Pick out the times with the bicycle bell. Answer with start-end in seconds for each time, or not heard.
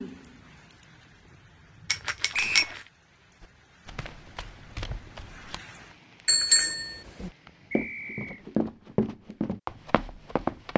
1.9-2.8, 6.2-7.3.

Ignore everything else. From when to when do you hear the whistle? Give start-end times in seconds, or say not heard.
2.3-2.8, 7.7-8.4.